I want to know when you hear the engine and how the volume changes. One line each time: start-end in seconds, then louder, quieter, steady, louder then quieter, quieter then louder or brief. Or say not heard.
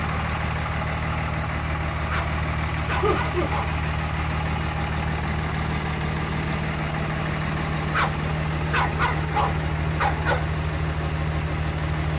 0.0-12.1 steady.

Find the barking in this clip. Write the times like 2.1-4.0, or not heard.
2.0-3.8, 7.9-10.5.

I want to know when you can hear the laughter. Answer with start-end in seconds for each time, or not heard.
3.0-3.5.